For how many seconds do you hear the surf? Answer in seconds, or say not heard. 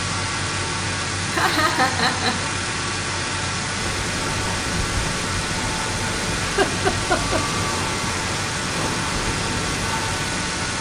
7 s.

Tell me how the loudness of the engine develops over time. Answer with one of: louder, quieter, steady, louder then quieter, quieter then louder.
steady.